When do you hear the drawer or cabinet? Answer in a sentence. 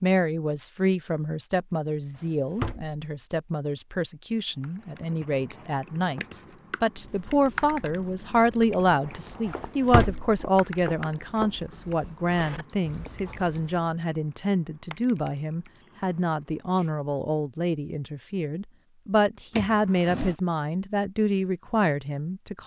The drawer or cabinet can be heard from 2.1 to 3.0 s, from 9.4 to 10.4 s and from 19.6 to 20.4 s.